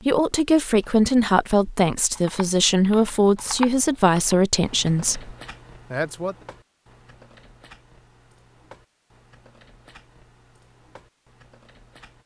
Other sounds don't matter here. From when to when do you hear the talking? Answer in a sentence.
The talking can be heard from 0.1 to 6.3 s.